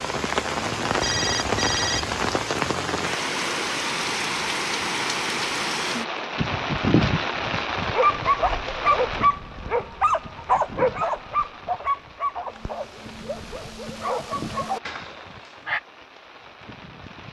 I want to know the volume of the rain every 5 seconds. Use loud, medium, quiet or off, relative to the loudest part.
loud, loud, quiet, quiet.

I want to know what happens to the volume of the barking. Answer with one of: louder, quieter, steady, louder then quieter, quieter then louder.
quieter then louder.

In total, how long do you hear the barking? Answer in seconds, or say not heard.
8 s.